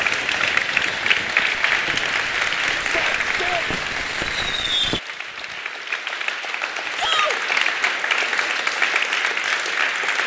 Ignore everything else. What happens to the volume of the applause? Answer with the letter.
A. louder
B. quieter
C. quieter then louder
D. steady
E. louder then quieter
C.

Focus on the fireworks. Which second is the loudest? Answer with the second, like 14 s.
5 s.